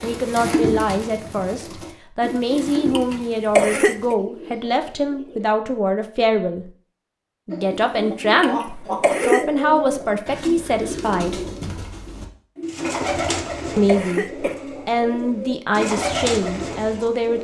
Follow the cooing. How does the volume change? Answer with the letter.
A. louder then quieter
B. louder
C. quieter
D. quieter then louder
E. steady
D.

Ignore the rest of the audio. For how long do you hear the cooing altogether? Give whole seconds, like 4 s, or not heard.
15 s.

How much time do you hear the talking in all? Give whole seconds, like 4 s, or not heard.
14 s.